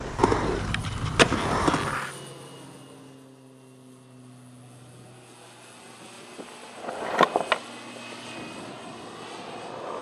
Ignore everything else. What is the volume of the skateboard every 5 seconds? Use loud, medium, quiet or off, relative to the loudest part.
loud, medium.